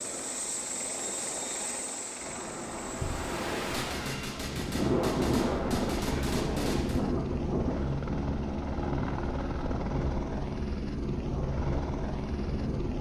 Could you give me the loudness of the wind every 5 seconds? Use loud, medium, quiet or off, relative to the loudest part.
loud, loud, medium.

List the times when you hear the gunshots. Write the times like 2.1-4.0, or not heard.
3.7-7.0.